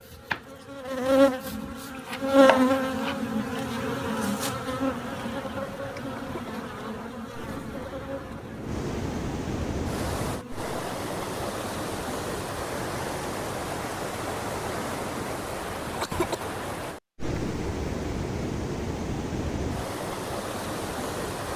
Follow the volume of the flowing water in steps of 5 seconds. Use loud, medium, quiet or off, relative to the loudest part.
off, medium, loud, loud, loud.